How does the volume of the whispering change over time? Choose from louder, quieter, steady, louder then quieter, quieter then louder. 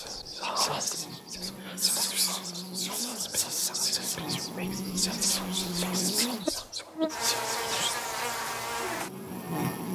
steady.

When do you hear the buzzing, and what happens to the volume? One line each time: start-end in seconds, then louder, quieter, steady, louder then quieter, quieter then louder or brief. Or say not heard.
0.0-9.9 louder.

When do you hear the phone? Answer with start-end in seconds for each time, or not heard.
not heard.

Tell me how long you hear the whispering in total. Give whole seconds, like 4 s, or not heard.
8 s.